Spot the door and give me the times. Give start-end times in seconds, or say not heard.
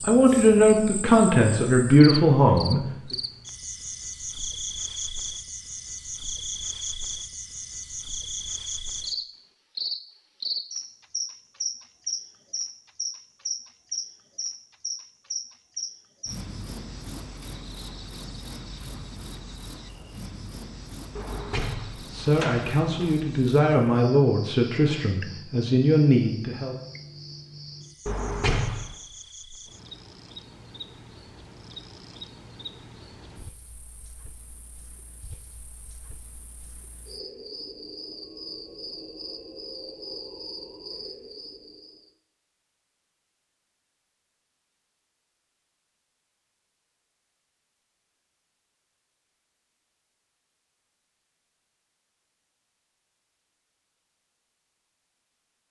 21.1-23.1, 28.1-28.9.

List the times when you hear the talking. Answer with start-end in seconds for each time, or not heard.
0.1-2.9, 22.1-26.8.